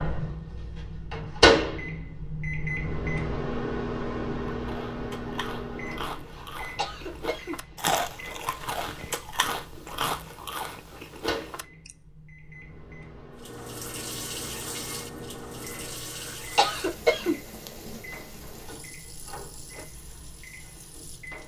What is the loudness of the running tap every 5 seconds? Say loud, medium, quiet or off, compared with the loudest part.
off, off, loud, medium, quiet.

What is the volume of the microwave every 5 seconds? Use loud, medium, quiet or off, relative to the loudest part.
loud, quiet, quiet, quiet, quiet.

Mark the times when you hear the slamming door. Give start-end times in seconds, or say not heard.
not heard.